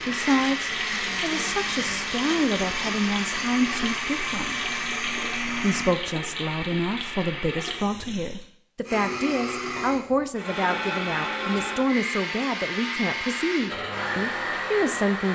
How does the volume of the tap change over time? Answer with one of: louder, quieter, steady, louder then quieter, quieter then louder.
steady.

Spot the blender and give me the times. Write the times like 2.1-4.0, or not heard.
0.0-6.0, 8.8-15.2.